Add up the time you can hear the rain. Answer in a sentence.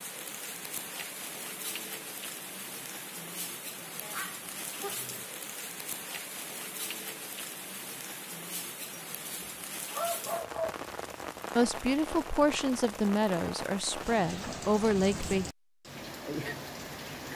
You can hear the rain for 17 seconds altogether.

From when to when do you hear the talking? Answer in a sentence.
You can hear the talking from 11.6 to 15.4 s.